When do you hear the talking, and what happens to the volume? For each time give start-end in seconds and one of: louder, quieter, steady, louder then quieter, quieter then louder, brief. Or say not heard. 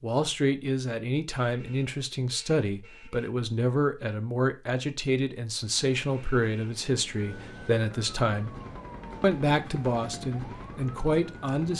0.0-8.6 steady
9.2-11.7 brief.